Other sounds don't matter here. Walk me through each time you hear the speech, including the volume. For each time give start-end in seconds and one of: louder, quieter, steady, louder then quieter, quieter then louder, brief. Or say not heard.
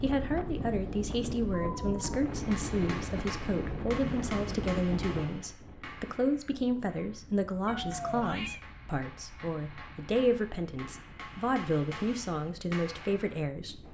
0.0-13.8 steady.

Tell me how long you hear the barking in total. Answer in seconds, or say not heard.
not heard.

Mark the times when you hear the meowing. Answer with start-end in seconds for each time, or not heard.
1.5-2.1, 7.7-8.6.